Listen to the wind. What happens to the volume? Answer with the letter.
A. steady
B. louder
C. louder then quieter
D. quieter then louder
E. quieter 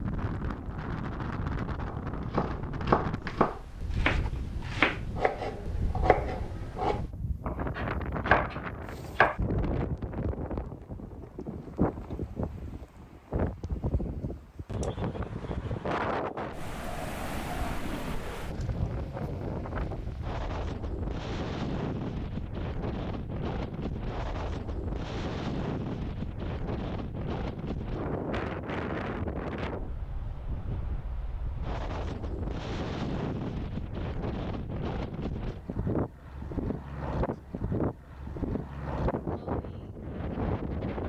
A.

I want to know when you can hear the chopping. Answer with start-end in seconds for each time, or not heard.
1.9-9.4.